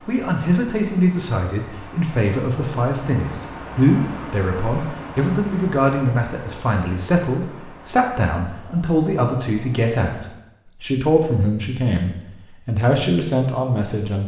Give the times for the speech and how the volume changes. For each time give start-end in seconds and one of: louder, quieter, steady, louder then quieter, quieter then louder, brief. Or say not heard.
0.1-14.2 steady.